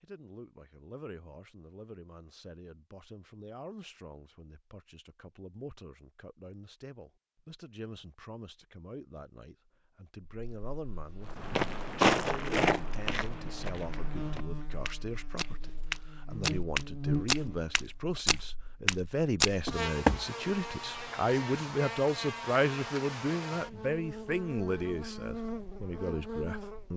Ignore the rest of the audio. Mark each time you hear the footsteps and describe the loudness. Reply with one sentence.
You can hear the footsteps from 11.3 to 20.2 s, getting quieter then louder.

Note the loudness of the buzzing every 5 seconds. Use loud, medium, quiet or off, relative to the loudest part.
off, off, medium, loud, loud, loud.